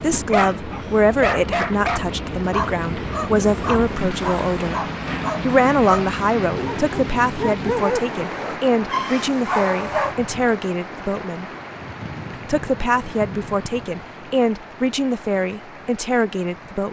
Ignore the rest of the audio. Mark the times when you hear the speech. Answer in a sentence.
You can hear the speech from 0.0 to 4.8 s, from 5.4 to 11.4 s and from 12.3 to 16.8 s.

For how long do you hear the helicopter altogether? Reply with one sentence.
You can't hear the helicopter here.